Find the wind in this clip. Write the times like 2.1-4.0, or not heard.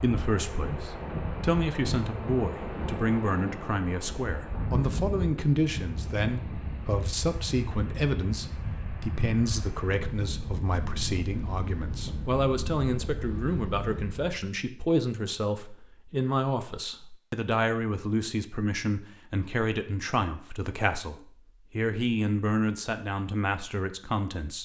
0.0-14.3.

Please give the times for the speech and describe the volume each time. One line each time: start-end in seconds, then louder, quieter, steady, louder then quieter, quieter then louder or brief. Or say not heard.
0.0-24.5 steady.